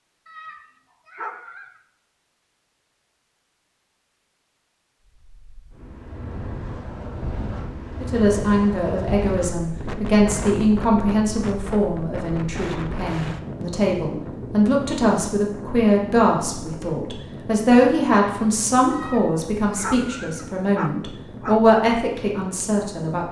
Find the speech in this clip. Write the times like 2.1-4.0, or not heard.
8.0-23.2.